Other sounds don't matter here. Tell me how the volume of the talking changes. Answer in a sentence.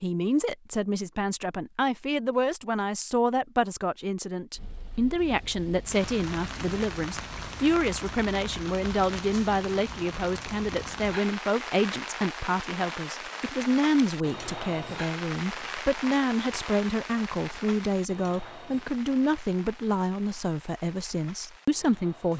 The loudness of the talking stays about the same.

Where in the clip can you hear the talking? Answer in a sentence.
The talking can be heard from 0.0 to 22.3 s.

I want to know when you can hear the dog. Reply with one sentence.
You can't hear the dog here.